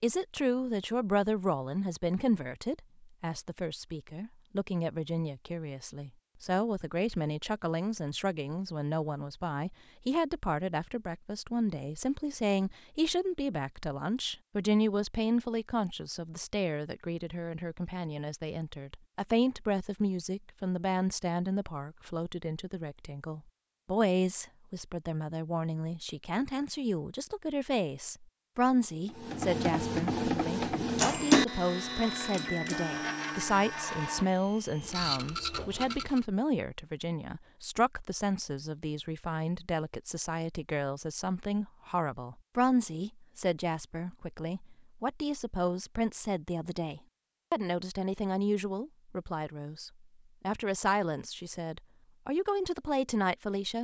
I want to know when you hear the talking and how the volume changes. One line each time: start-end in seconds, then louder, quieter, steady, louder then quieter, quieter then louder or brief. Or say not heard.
0.0-53.7 steady.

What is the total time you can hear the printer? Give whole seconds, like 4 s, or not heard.
7 s.